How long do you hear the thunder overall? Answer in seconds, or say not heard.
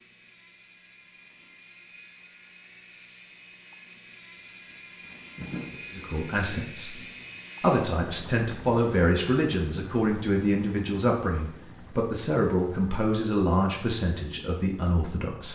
3 s.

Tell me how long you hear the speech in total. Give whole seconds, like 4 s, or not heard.
9 s.